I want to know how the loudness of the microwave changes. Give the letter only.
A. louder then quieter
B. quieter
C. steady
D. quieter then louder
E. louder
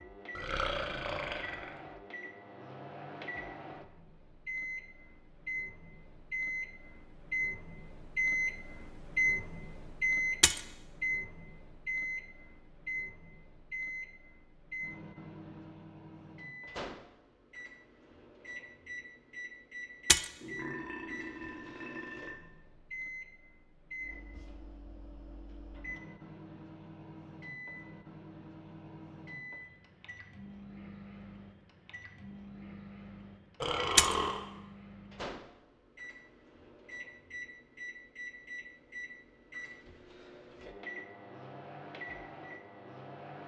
B.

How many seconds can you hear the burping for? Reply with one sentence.
You can hear the burping for 4 seconds altogether.